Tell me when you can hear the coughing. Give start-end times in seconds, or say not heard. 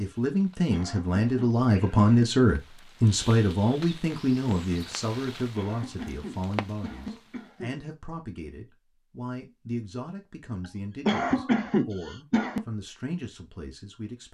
0.7-2.3, 5.5-7.8, 11.1-12.7.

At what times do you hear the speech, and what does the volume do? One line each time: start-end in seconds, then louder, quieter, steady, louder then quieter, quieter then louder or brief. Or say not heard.
0.0-14.2 quieter.